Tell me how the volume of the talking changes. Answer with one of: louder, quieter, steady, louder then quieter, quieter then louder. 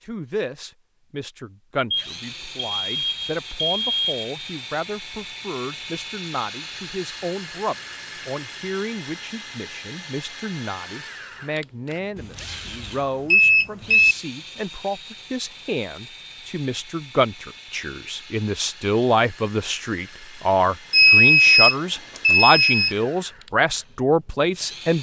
louder.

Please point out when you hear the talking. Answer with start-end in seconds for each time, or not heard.
0.1-24.9.